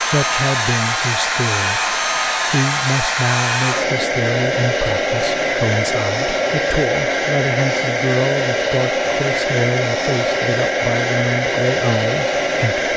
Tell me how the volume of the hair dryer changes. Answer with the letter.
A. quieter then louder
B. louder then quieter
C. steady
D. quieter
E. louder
C.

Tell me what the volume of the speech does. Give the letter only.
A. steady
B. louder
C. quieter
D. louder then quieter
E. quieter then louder
A.